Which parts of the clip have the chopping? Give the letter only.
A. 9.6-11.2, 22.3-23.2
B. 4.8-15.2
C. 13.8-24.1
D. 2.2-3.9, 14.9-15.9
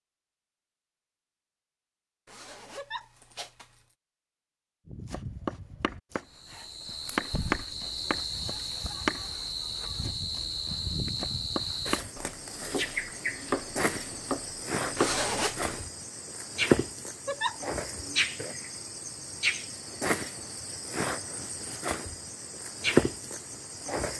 B.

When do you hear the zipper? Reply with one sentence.
You can hear the zipper from 2.2 to 3.9 s and from 14.9 to 15.9 s.